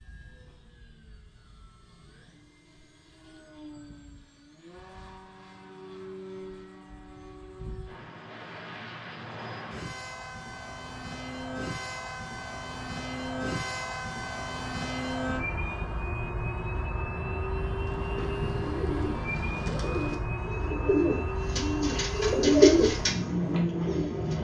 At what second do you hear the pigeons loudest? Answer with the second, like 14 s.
23 s.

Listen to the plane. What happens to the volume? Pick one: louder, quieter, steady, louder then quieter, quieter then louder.
louder.